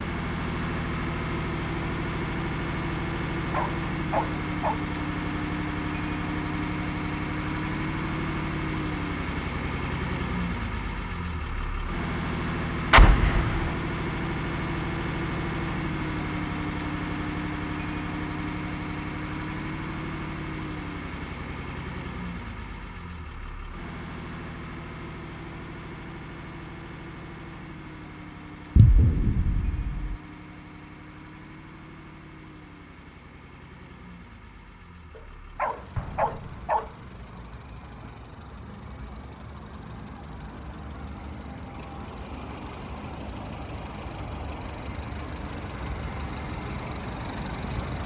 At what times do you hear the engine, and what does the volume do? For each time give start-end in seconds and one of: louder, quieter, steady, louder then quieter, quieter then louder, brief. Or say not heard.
0.0-48.0 quieter then louder.